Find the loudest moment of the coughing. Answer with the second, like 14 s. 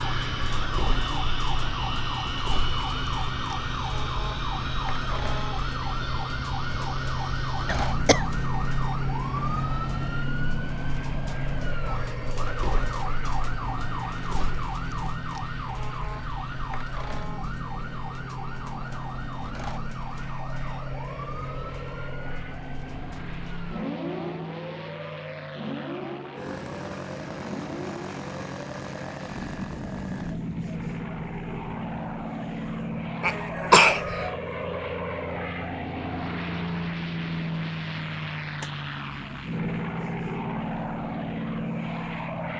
34 s.